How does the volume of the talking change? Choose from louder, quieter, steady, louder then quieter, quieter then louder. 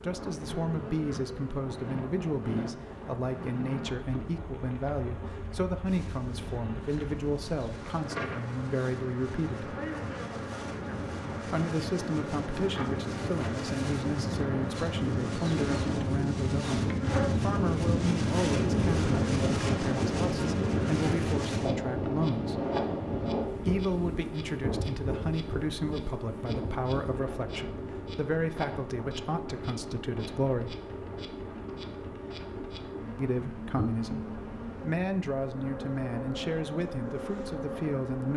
steady.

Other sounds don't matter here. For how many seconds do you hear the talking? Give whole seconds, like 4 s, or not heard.
33 s.